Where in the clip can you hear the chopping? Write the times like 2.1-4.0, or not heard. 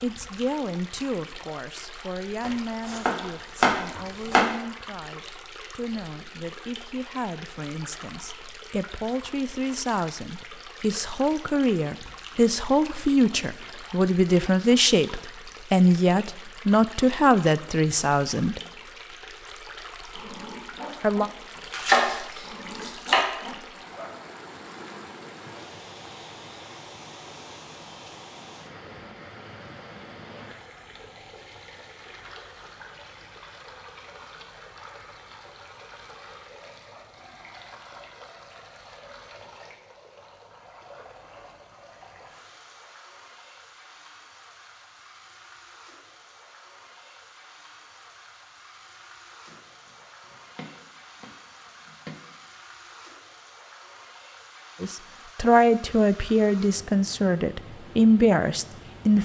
2.4-4.5, 21.7-23.2, 49.5-52.2.